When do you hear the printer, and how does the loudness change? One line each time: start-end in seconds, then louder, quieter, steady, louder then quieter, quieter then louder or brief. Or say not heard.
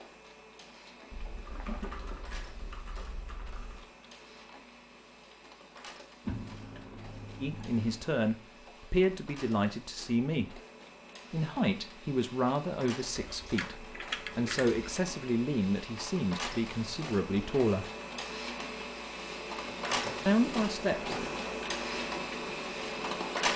0.0-23.5 louder.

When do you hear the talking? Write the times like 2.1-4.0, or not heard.
7.4-10.6, 11.3-17.9, 20.2-21.2.